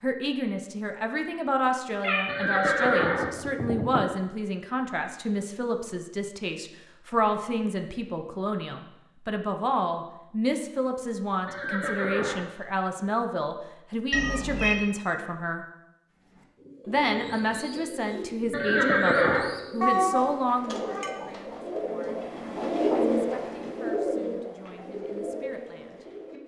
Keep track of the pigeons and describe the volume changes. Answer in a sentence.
The loudness of the pigeons goes up, then down.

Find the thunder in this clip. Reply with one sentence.
The thunder can't be heard in this clip.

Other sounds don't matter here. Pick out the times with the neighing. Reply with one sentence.
You can hear the neighing from 2.2 to 4.0 s, from 11.4 to 12.4 s and from 18.5 to 19.5 s.